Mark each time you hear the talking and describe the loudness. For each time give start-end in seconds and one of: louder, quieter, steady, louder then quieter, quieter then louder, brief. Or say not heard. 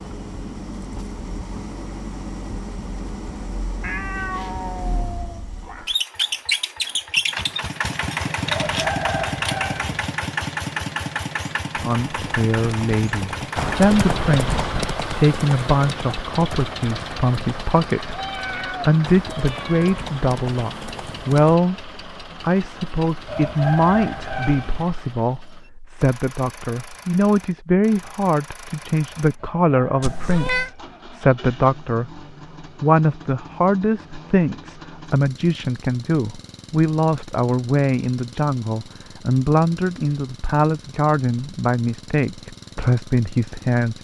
11.8-43.9 steady.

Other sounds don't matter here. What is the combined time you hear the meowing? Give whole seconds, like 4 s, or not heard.
5 s.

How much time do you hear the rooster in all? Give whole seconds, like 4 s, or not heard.
5 s.